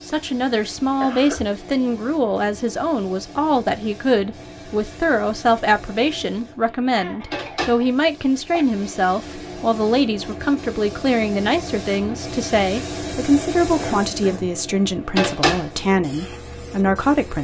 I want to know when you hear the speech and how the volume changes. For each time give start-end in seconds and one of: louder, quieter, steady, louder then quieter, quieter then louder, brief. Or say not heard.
0.0-17.4 steady.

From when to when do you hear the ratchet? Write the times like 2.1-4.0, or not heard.
not heard.